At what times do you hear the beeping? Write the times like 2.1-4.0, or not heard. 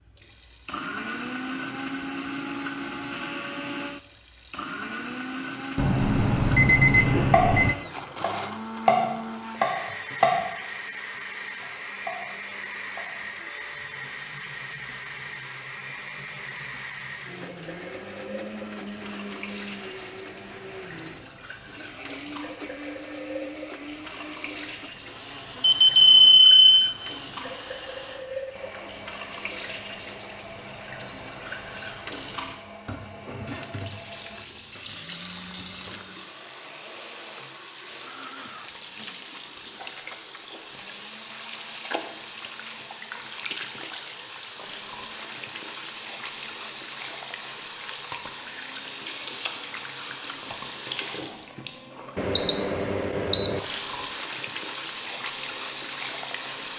5.8-7.8, 25.6-26.8, 52.1-53.6.